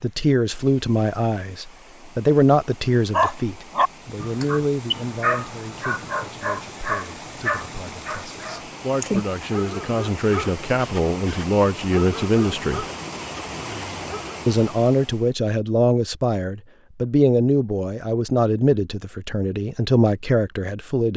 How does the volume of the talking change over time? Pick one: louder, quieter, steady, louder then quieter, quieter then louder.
quieter then louder.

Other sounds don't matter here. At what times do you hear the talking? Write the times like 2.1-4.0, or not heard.
0.0-12.8, 14.4-21.1.